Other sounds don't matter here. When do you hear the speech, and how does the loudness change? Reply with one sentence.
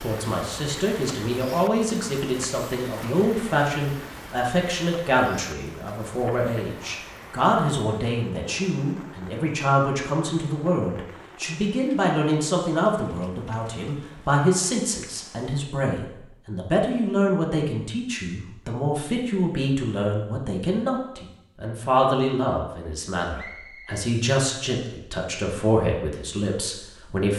The speech can be heard from 0.0 to 27.3 s, at a steady volume.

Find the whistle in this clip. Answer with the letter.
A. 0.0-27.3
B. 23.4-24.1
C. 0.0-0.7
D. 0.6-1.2
B.